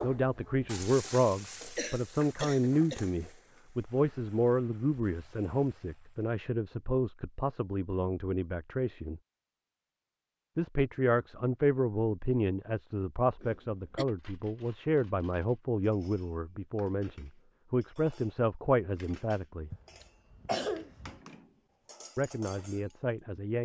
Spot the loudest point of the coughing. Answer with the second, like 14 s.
21 s.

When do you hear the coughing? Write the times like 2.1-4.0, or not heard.
1.8-3.1, 13.4-14.1, 19.7-21.1.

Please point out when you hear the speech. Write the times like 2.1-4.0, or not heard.
0.0-9.2, 10.6-19.7, 22.1-23.6.